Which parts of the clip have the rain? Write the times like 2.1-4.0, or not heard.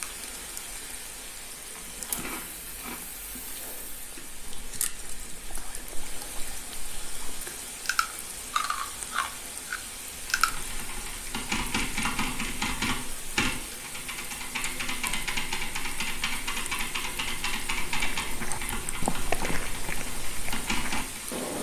0.0-21.5.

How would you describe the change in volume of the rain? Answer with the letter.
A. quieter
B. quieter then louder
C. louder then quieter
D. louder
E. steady
E.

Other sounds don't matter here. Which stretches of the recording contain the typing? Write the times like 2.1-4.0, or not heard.
10.2-21.2.